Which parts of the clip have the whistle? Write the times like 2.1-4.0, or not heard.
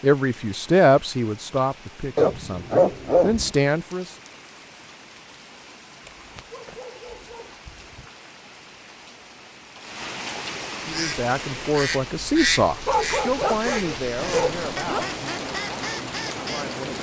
not heard.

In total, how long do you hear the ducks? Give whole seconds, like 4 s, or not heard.
6 s.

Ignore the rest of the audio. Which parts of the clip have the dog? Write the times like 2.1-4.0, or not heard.
2.1-3.5, 6.0-8.1, 12.8-15.1.